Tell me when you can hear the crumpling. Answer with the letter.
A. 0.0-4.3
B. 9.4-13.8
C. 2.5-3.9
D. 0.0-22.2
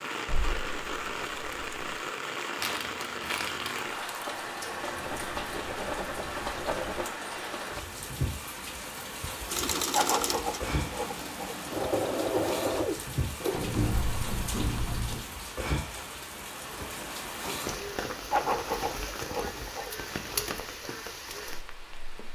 C.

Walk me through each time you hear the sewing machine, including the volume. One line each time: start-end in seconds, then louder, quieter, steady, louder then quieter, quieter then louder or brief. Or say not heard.
9.4-13.8 quieter then louder.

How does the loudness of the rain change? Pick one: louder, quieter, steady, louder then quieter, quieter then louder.
steady.